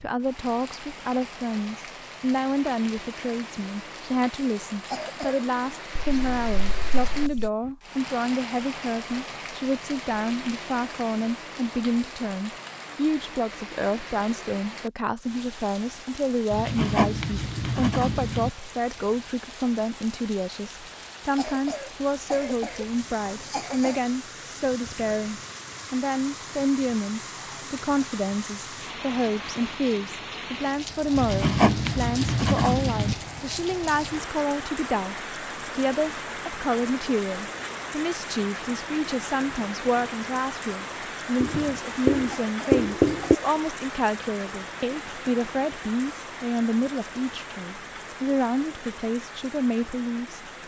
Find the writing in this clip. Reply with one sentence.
The writing can be heard from 6.0 to 7.5 s, from 16.5 to 18.5 s, from 31.1 to 33.1 s and from 41.4 to 43.4 s.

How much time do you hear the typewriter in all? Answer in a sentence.
The typewriter can't be heard in this clip.